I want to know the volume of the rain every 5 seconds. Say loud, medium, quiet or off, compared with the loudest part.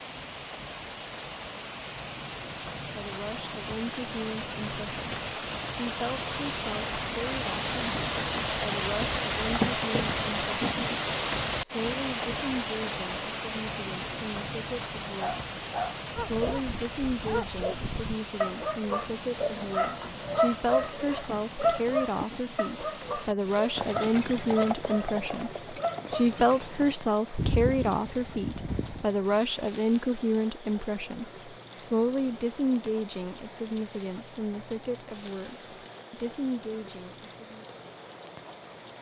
medium, loud, loud, medium, quiet, quiet, quiet, quiet.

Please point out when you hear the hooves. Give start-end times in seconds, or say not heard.
23.8-29.1.